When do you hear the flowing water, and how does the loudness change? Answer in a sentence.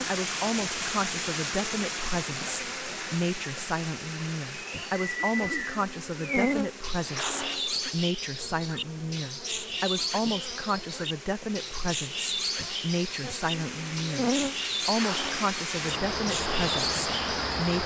You can hear the flowing water from 0.0 to 17.8 s, getting quieter then louder.